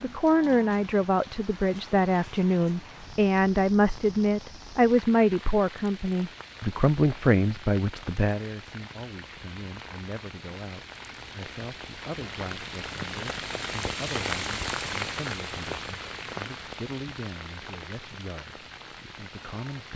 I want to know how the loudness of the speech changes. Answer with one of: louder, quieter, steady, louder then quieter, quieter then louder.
quieter.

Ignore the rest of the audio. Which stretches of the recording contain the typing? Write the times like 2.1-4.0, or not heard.
not heard.